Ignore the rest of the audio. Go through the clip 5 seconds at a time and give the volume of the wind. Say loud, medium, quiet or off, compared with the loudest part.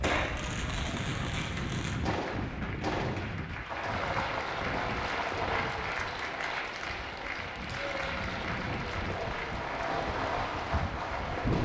loud, medium, loud.